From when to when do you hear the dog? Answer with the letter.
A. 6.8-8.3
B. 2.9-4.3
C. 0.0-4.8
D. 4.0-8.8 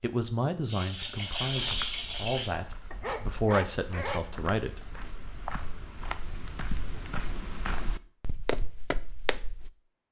B.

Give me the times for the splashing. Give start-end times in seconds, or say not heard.
0.7-2.5.